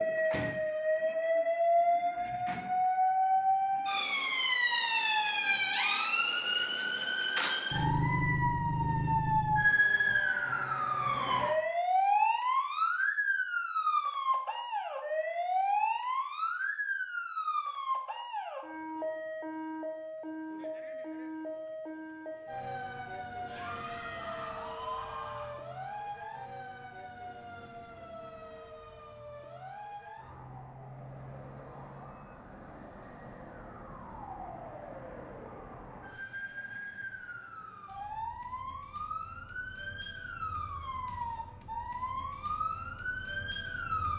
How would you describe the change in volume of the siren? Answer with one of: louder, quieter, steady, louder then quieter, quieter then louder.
quieter then louder.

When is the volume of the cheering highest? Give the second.
25 s.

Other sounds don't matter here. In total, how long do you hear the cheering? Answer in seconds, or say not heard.
2 s.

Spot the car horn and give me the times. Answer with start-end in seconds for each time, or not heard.
not heard.